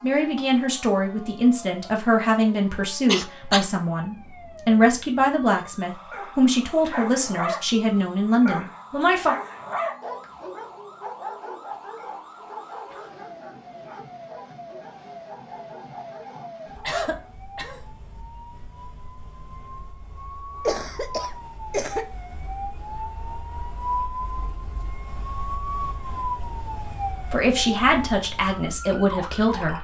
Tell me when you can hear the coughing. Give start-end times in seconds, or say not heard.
3.0-3.6, 16.8-17.8, 20.6-22.1.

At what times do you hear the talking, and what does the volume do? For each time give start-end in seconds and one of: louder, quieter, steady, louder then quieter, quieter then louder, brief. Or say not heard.
0.0-9.3 steady
27.3-29.7 brief.